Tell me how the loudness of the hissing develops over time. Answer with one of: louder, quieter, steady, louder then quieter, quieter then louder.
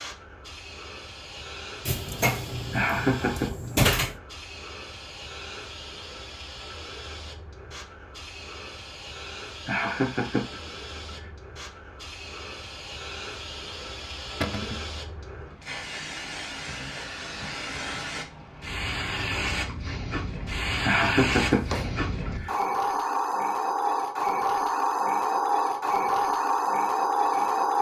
louder.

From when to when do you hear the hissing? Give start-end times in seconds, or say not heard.
0.0-27.7.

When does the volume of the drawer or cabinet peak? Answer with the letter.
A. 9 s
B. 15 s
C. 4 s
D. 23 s
C.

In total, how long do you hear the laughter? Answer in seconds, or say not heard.
4 s.